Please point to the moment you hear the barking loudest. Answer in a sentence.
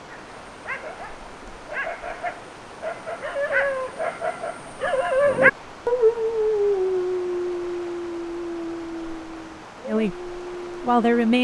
The volume of the barking peaks at 5 seconds.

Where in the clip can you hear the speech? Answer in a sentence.
You can hear the speech from 9.8 to 11.3 s.